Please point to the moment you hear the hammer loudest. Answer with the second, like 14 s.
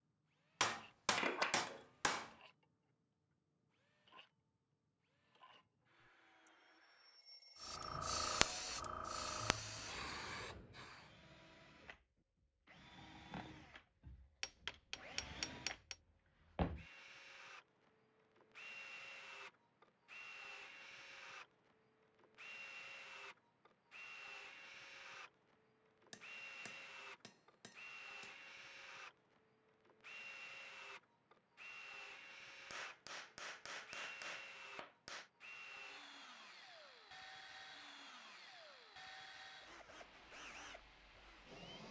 1 s.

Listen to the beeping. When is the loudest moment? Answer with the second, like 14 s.
8 s.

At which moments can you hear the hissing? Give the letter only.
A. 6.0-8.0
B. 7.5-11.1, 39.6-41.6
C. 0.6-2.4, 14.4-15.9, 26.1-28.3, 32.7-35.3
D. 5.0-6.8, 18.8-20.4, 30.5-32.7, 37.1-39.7
B.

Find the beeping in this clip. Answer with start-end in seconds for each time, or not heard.
6.0-8.0.